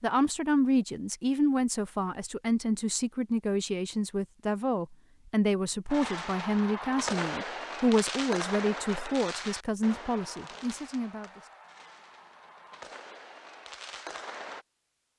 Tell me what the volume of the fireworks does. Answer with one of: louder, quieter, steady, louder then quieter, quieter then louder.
quieter then louder.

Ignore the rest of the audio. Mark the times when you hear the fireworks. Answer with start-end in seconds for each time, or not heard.
5.9-14.7.